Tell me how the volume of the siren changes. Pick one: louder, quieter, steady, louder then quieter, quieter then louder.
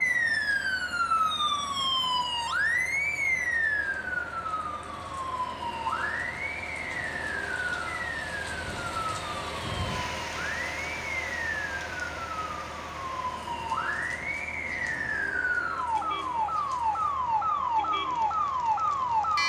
quieter then louder.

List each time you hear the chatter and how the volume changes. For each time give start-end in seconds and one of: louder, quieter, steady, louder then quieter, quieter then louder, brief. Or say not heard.
not heard.